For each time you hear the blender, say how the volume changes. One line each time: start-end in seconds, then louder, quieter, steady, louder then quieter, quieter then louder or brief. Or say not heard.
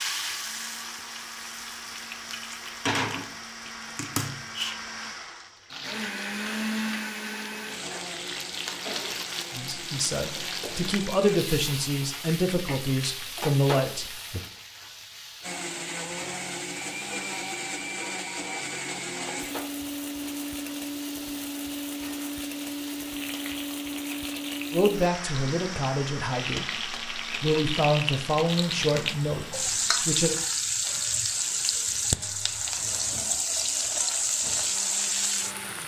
0.0-11.4 louder then quieter
15.4-35.8 quieter.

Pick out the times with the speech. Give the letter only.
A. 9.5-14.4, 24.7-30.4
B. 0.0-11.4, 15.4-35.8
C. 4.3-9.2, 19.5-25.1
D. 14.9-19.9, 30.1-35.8
A.